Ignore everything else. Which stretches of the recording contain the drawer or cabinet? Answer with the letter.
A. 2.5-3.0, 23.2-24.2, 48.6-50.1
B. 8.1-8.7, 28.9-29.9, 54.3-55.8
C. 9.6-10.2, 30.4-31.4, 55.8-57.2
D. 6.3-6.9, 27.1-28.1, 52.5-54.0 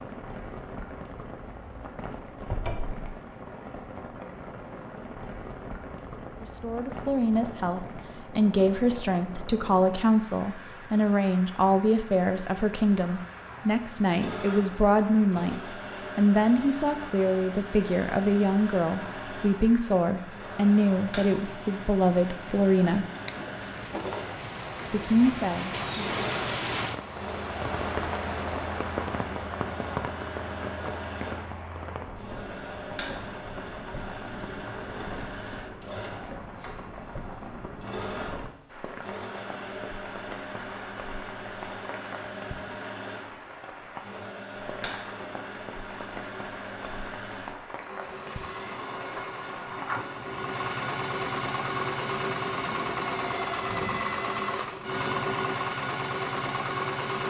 A.